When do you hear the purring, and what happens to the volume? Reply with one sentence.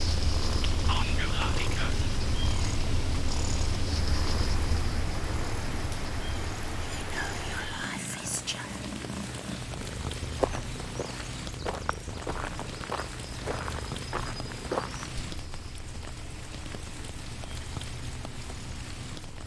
You can hear the purring from 0.0 to 19.4 s, getting quieter.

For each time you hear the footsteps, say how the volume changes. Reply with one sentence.
The footsteps can be heard from 10.2 to 15.2 s, getting louder.